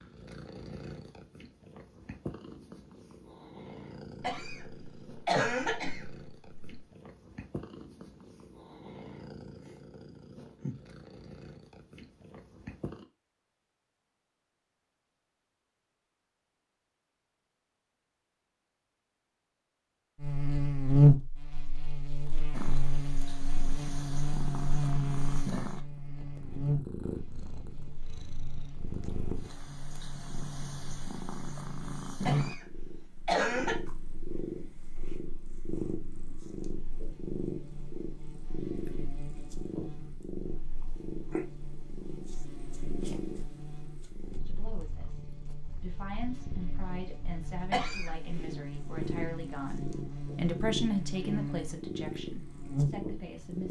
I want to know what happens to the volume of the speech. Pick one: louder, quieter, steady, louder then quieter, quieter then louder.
louder then quieter.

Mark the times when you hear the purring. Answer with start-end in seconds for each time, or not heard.
0.0-13.1, 22.5-53.6.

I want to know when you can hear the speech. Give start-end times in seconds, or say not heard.
44.3-53.6.